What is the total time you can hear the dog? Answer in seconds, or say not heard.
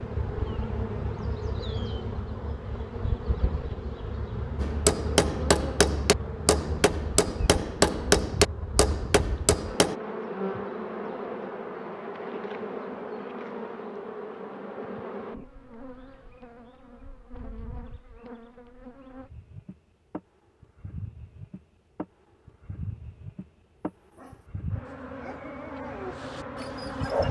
3 s.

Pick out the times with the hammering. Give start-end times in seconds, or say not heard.
4.6-9.9.